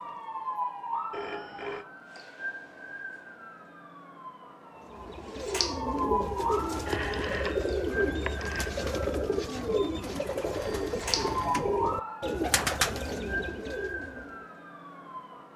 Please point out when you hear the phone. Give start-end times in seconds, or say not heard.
1.1-1.9, 6.8-8.7, 10.5-11.7.